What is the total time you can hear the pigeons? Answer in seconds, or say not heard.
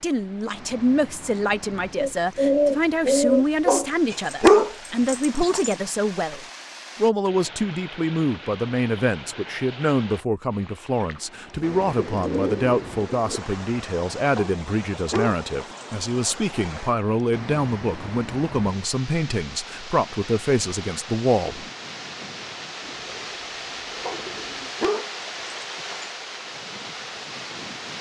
6 s.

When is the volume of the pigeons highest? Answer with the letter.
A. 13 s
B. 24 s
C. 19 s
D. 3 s
D.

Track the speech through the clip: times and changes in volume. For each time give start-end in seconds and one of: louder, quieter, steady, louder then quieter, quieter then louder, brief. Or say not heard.
0.0-21.6 steady.